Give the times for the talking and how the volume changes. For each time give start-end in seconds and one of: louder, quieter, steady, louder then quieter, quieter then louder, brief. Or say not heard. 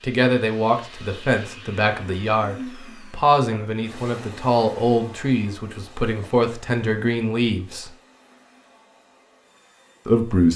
0.0-7.9 steady
10.1-10.5 brief.